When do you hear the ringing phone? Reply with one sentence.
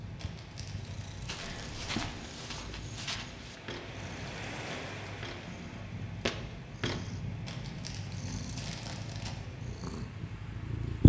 You can hear the ringing phone from 1.4 to 2.2 s.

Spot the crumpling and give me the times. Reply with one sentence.
The crumpling can be heard from 0.1 to 2.1 s and from 7.5 to 9.3 s.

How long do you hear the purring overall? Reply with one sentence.
You can hear the purring for 11 seconds altogether.